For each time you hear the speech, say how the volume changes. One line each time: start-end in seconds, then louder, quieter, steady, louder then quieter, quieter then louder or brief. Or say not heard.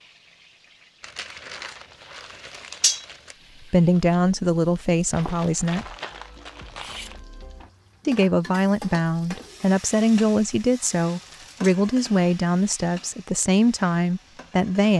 3.6-5.8 brief
8.1-14.9 steady.